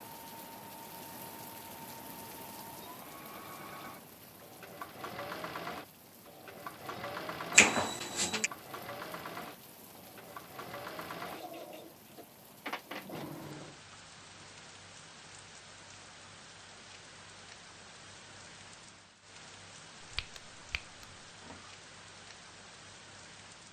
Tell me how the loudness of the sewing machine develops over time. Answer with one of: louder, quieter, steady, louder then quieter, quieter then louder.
louder.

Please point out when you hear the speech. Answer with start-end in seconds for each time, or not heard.
not heard.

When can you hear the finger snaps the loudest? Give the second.
8 s.